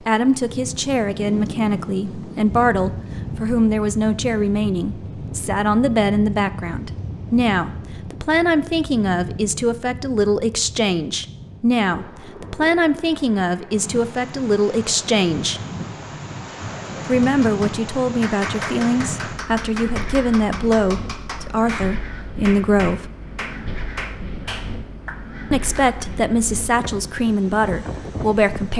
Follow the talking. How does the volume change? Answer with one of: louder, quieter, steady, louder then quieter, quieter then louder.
steady.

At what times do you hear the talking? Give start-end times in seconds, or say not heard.
0.1-15.6, 17.1-23.1, 25.5-28.7.